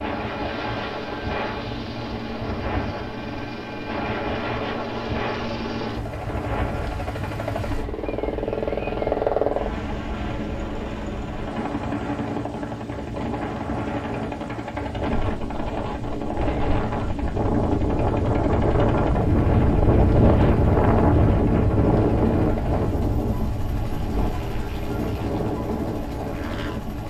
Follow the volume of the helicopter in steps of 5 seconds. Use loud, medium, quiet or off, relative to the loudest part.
medium, loud, medium, medium, medium, medium.